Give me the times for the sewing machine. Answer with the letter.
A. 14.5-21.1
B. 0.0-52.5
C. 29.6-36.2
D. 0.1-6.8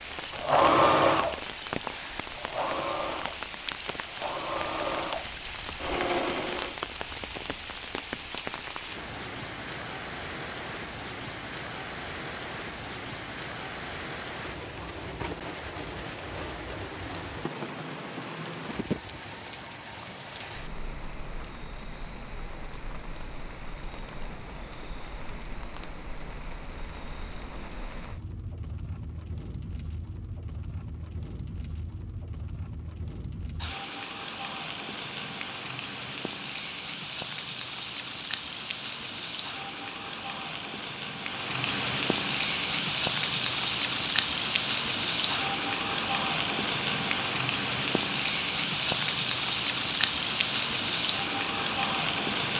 D.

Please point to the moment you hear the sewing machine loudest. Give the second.
1 s.